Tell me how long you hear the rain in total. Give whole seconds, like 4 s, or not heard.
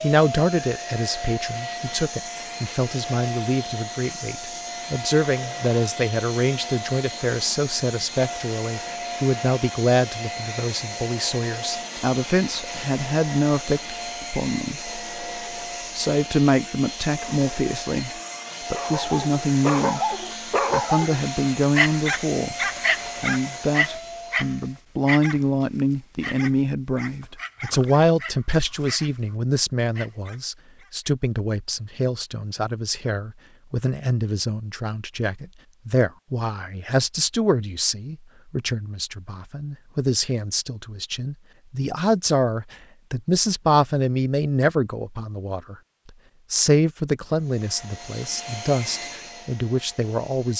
not heard.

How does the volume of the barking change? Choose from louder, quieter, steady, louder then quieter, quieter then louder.
quieter.